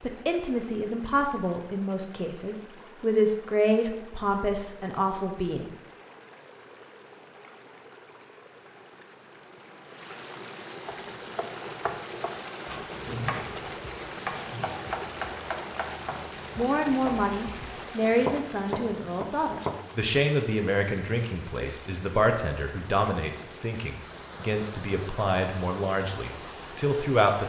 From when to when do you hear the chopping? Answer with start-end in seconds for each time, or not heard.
10.8-20.1.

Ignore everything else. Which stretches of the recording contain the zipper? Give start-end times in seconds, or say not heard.
13.0-15.0.